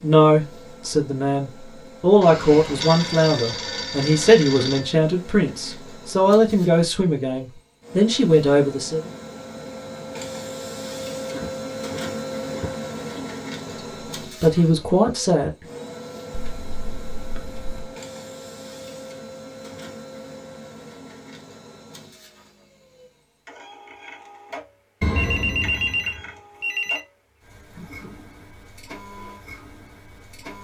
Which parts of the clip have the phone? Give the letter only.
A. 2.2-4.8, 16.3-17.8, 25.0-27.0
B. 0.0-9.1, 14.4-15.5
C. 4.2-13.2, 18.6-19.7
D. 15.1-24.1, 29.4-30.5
A.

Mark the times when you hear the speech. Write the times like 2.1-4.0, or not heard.
0.0-9.1, 14.4-15.5.